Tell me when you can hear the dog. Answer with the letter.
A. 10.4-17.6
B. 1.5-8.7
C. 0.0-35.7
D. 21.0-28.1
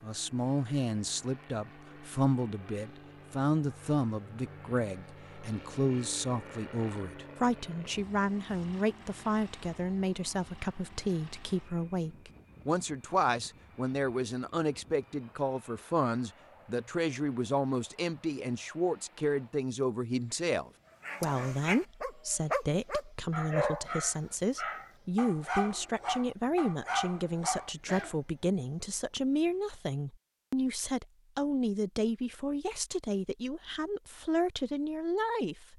D.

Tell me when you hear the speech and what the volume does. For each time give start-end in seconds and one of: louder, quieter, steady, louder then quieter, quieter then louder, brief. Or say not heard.
0.0-35.7 steady.